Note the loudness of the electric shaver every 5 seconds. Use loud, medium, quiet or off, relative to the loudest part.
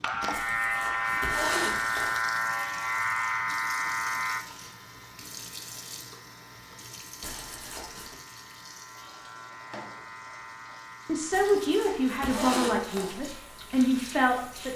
loud, quiet, quiet.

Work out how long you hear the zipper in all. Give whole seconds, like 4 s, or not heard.
5 s.